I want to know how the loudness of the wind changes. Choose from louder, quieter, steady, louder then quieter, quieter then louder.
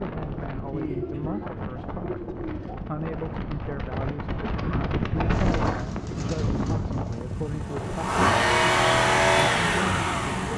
louder then quieter.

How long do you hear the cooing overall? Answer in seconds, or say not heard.
4 s.